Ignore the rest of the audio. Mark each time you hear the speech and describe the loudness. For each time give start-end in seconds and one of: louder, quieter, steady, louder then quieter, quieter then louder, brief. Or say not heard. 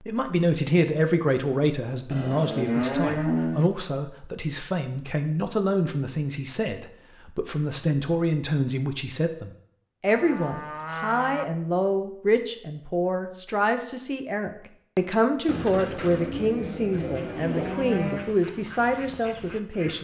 0.0-19.9 steady.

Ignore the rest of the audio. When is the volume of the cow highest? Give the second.
3 s.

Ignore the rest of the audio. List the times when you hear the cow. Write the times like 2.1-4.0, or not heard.
2.1-3.7, 10.1-11.4, 15.4-18.4.